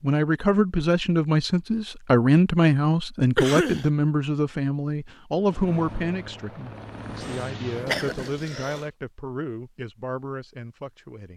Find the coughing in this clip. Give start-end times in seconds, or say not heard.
3.4-3.9, 7.8-8.8.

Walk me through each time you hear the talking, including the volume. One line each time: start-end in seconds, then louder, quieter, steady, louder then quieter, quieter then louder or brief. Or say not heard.
0.0-11.3 quieter.